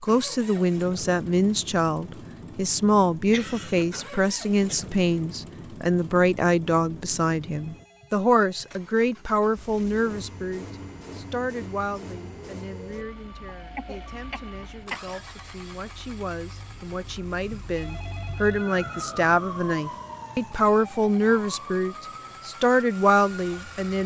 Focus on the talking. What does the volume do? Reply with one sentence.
The volume of the talking goes down, then up.